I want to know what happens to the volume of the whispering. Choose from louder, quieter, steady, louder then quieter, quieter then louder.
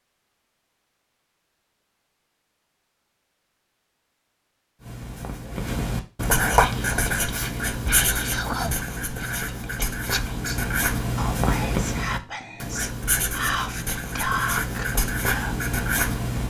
louder.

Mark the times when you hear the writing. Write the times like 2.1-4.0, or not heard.
4.8-16.4.